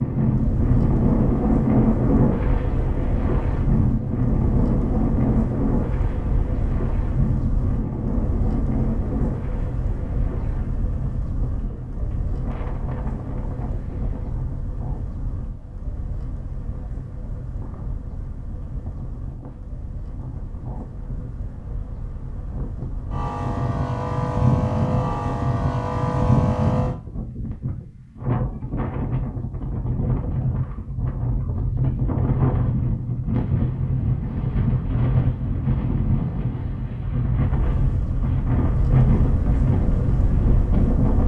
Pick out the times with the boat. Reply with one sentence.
The boat can be heard from 0.2 to 27.2 s and from 37.5 to 41.2 s.